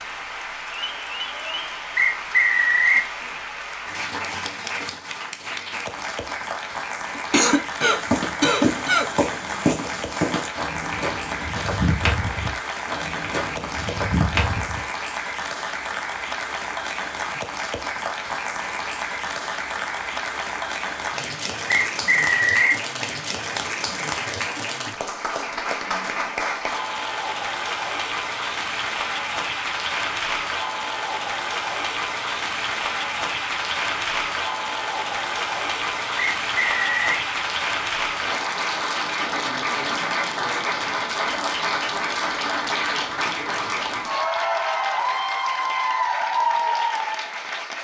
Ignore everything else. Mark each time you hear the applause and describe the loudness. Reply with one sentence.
You can hear the applause from 0.0 to 47.8 s, getting louder.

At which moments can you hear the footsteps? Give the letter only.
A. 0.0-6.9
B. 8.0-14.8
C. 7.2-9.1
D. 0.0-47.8
B.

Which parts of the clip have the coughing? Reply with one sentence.
You can hear the coughing from 7.2 to 9.1 s.